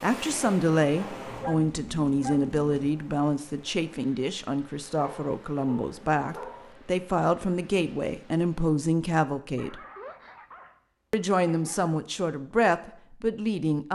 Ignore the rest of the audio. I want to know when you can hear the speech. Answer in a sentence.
You can hear the speech from 0.0 to 9.8 s and from 11.1 to 13.8 s.